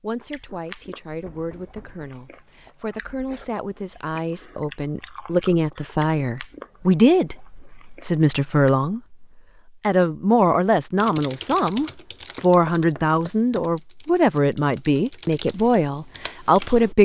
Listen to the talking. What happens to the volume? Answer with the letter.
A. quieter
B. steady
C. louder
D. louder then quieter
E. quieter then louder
C.